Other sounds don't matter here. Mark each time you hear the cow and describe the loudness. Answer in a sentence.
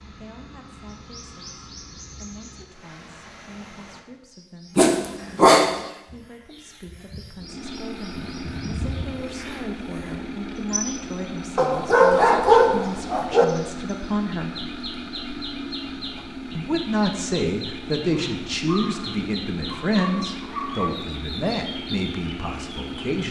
You can't hear the cow here.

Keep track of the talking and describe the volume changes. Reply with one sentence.
The volume of the talking goes up.